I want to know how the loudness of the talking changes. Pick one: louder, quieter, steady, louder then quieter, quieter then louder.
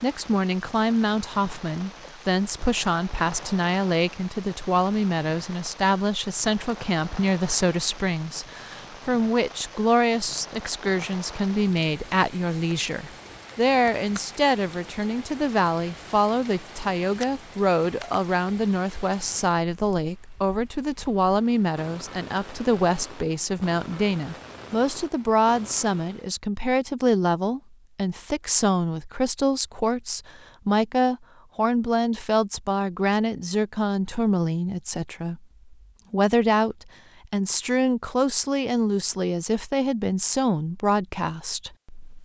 steady.